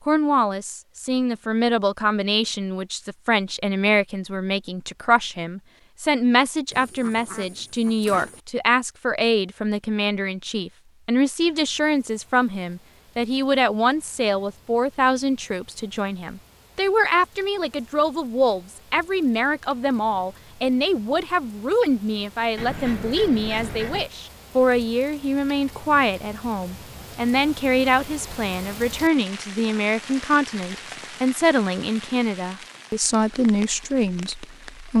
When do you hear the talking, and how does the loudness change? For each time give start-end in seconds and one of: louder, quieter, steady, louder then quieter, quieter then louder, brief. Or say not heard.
0.1-34.9 steady.